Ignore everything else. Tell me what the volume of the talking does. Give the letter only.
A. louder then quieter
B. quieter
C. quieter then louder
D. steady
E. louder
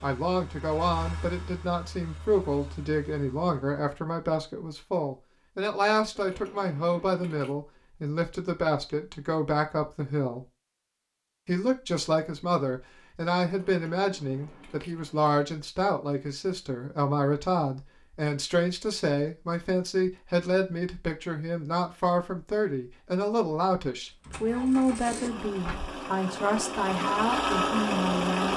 D.